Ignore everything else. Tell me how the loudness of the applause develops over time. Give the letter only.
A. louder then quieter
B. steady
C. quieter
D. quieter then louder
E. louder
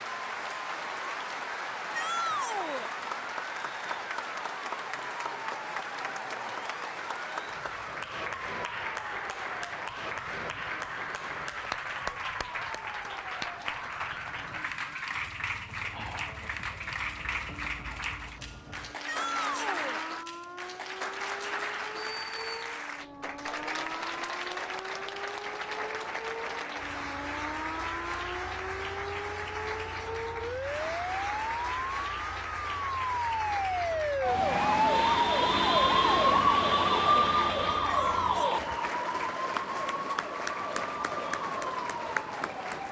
B.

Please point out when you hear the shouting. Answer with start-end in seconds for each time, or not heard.
1.9-2.9, 19.1-20.0, 37.9-38.5.